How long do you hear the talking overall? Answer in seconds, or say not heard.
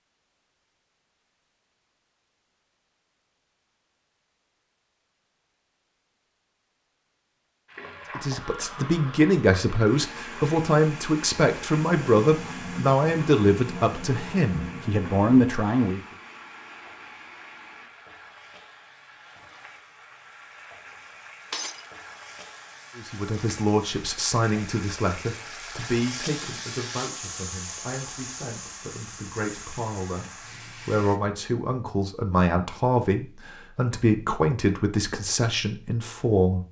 21 s.